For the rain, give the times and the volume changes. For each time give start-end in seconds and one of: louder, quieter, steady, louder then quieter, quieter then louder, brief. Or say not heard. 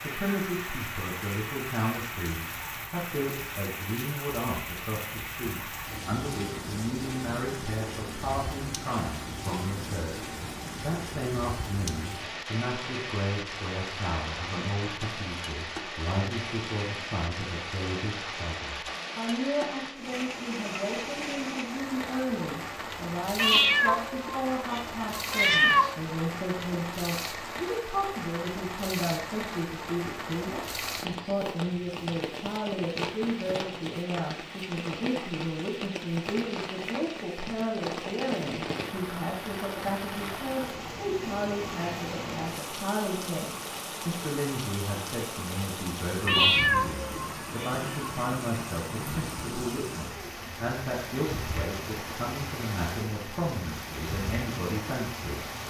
0.0-55.6 steady.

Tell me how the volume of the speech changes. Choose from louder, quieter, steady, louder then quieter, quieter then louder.
steady.